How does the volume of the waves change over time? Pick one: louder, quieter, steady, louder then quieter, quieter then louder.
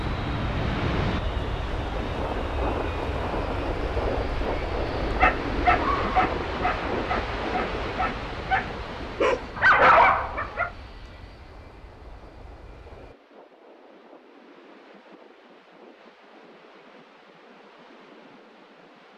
quieter.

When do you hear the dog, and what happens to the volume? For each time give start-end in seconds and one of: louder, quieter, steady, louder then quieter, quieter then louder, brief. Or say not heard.
5.2-10.7 quieter then louder.